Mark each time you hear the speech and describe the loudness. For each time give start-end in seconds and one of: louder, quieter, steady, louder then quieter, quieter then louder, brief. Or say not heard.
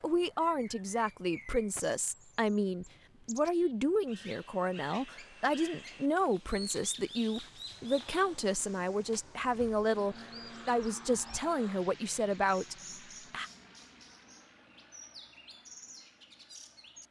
0.0-13.5 steady.